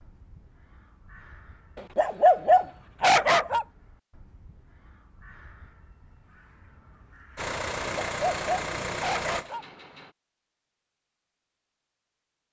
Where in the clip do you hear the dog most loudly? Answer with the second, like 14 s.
2 s.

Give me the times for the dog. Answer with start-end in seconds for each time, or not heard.
1.8-3.6, 7.8-9.7.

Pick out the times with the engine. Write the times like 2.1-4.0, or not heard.
7.3-10.2.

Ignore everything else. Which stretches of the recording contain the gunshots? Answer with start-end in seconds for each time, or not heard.
not heard.